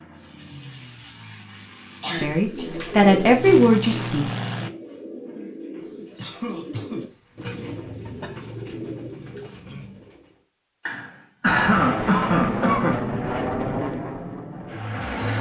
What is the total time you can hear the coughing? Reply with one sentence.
The coughing can be heard for 5 seconds in total.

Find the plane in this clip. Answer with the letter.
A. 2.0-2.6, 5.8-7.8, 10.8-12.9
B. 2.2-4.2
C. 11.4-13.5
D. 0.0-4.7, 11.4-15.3
D.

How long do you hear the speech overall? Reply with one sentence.
The speech can be heard for 2 seconds in total.